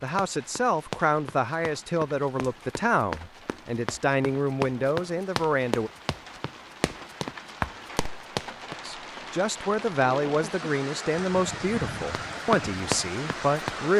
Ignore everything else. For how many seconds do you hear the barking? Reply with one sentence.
You can't hear the barking here.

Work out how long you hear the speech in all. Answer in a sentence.
You can hear the speech for 11 seconds altogether.